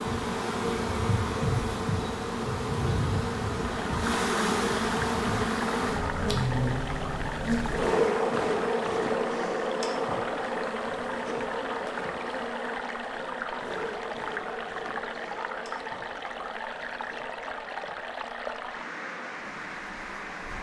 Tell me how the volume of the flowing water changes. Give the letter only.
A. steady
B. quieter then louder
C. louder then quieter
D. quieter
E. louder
A.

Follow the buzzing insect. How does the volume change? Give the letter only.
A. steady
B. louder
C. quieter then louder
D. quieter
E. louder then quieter
D.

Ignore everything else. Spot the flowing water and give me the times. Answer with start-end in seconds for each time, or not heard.
3.6-20.5.